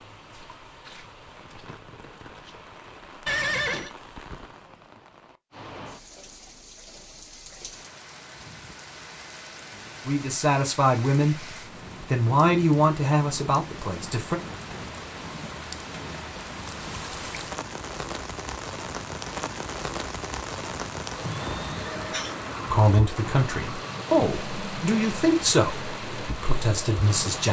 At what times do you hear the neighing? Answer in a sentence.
The neighing can be heard from 3.2 to 4.0 s and from 21.2 to 22.4 s.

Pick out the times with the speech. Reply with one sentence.
You can hear the speech from 10.1 to 14.4 s and from 22.7 to 27.4 s.